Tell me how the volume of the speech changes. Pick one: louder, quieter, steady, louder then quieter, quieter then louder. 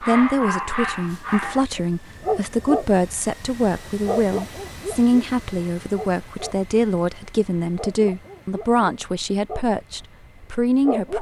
steady.